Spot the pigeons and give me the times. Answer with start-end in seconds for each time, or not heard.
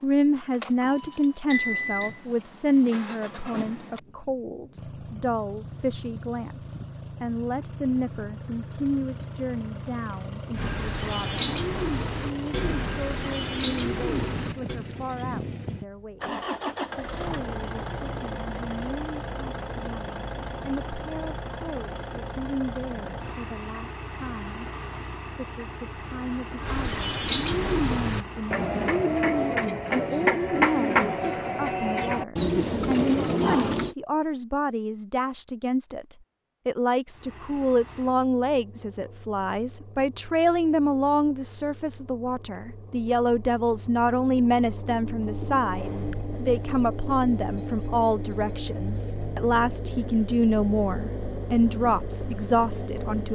10.5-14.8, 26.6-34.0.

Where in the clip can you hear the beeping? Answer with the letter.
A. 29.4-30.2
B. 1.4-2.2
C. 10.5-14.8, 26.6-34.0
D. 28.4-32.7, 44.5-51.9
B.